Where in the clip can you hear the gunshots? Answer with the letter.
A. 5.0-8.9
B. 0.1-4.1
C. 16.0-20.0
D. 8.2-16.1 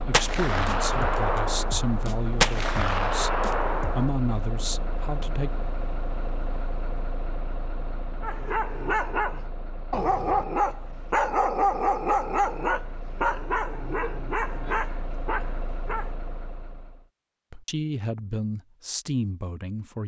B.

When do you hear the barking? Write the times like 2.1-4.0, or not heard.
8.2-16.1.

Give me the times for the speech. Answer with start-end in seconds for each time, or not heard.
0.1-3.3, 4.0-5.6, 17.5-20.0.